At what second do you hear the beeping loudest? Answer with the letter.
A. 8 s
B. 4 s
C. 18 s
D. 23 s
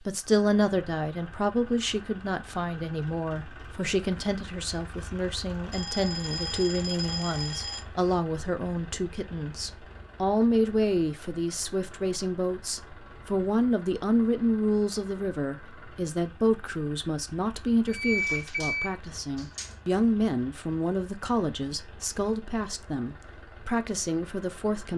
C.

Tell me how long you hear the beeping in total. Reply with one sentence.
You can hear the beeping for 4 seconds altogether.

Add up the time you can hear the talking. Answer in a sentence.
You can hear the talking for 25 seconds altogether.